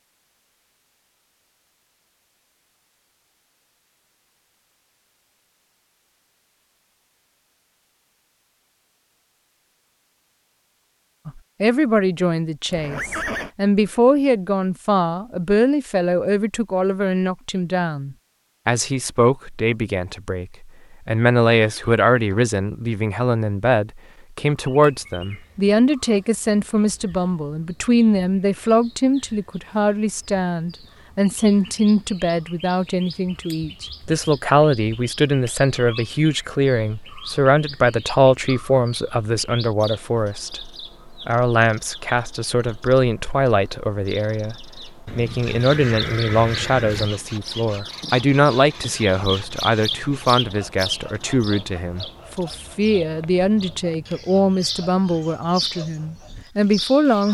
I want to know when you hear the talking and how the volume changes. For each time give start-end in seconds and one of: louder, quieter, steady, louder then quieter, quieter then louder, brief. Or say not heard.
11.2-57.2 steady.